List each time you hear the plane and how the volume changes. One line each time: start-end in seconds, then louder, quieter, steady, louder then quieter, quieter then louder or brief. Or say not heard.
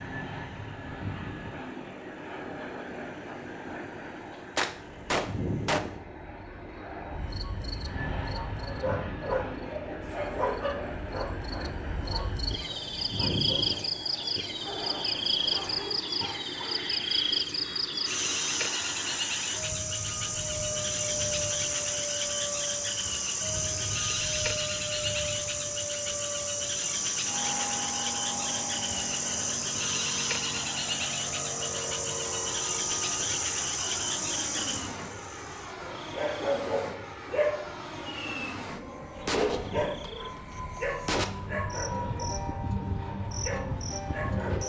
0.0-44.6 steady.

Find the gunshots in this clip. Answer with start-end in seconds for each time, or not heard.
4.5-5.8, 39.2-41.2.